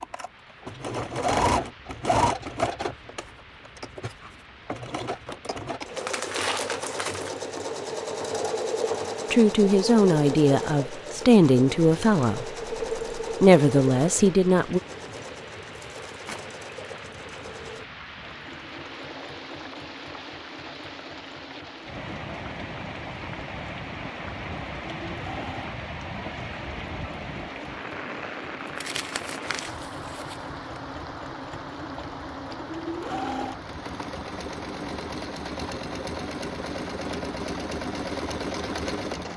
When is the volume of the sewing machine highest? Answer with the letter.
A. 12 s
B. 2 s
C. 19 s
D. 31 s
B.